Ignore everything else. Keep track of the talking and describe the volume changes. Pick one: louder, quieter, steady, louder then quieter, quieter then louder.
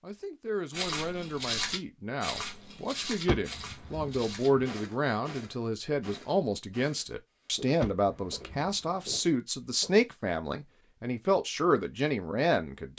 louder.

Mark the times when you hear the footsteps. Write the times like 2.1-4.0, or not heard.
0.7-10.1.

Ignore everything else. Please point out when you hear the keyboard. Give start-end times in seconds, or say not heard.
not heard.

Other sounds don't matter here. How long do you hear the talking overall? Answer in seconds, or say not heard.
13 s.